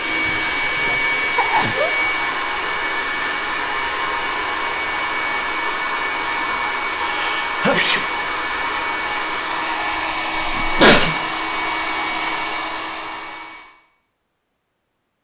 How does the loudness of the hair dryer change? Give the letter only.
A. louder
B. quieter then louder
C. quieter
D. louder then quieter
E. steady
E.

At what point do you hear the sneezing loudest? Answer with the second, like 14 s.
11 s.